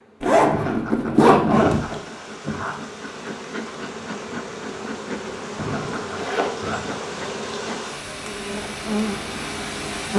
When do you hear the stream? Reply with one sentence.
The stream can be heard from 1.5 to 10.1 s.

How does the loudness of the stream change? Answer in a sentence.
The volume of the stream goes up.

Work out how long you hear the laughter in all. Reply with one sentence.
You can hear the laughter for 4 seconds altogether.